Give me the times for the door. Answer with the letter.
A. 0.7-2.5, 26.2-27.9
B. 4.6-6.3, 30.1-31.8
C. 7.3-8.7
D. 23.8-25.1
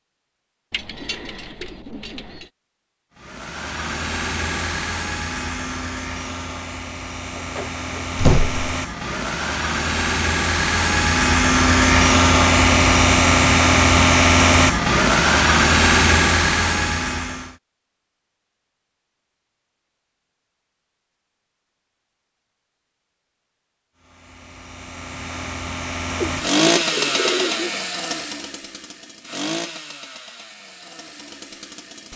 C.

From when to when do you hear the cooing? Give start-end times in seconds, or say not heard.
0.7-2.5, 26.2-27.9.